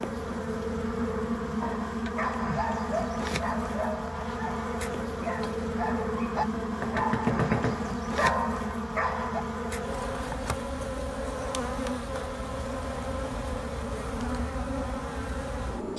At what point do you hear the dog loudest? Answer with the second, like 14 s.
7 s.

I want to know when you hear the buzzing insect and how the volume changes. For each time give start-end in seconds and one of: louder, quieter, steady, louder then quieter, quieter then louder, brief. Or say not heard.
0.0-15.9 steady.